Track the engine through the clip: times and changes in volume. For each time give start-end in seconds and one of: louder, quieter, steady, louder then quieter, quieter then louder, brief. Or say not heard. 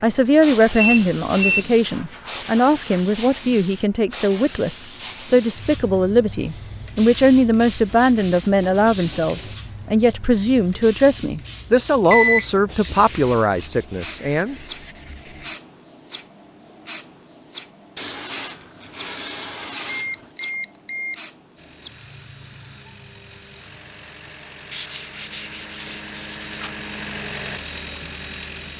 21.6-28.7 louder.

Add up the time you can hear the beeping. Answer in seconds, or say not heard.
3 s.